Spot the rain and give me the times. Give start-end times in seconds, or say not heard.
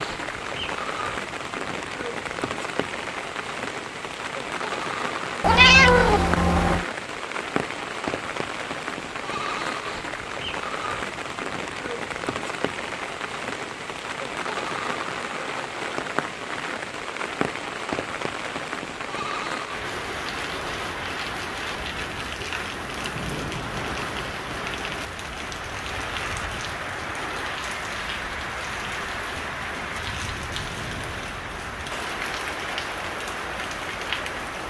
0.0-34.6.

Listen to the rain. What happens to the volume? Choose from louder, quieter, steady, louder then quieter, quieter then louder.
steady.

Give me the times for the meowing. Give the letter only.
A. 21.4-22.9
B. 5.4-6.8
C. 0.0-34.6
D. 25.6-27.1
B.